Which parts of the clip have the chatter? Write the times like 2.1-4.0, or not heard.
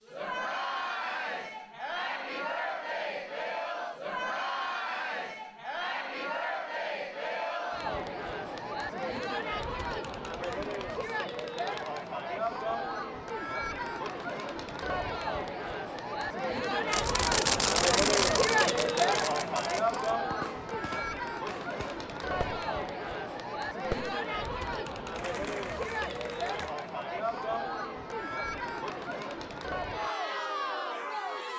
0.1-31.5.